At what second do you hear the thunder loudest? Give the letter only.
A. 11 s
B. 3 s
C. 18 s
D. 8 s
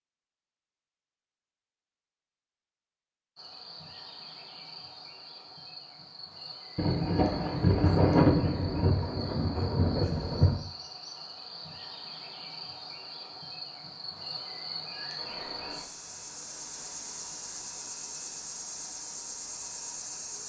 D.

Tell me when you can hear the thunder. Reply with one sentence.
The thunder can be heard from 6.8 to 10.6 s.